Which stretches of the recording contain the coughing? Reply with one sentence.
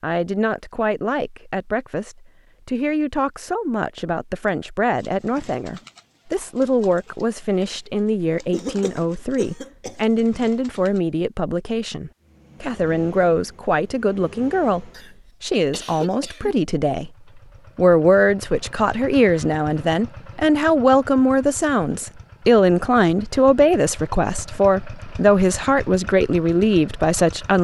The coughing can be heard from 8.5 to 10.2 s and from 14.9 to 16.6 s.